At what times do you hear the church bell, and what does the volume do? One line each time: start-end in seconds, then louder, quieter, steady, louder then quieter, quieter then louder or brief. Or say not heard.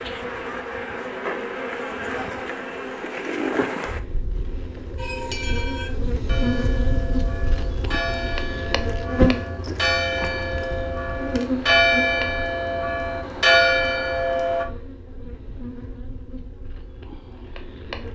5.0-14.7 louder.